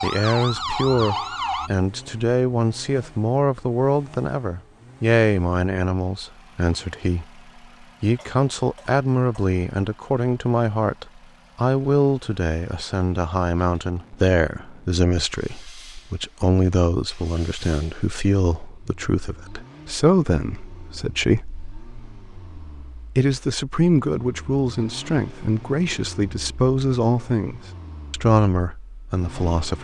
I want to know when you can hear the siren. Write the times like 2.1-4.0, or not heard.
0.0-1.7.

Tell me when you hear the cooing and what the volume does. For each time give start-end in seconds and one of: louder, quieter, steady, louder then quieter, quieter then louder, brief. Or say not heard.
not heard.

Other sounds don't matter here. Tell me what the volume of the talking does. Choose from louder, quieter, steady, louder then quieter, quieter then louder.
steady.